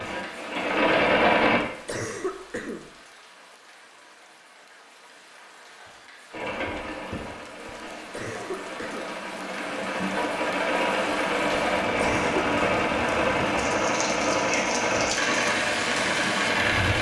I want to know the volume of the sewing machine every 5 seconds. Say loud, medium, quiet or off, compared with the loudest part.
loud, quiet, loud, loud.